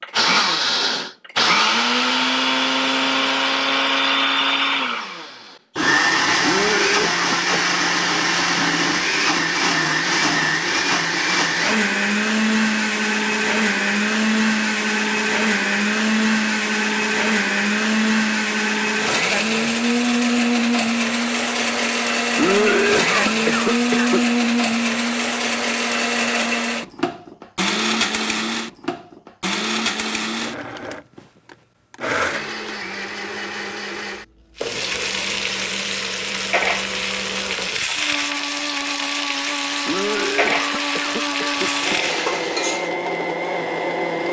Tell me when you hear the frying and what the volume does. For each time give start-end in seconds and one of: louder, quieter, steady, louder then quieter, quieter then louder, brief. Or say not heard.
34.5-42.9 steady.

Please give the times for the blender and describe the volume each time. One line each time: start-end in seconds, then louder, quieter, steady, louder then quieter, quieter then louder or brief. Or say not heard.
0.0-44.2 quieter.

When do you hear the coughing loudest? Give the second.
23 s.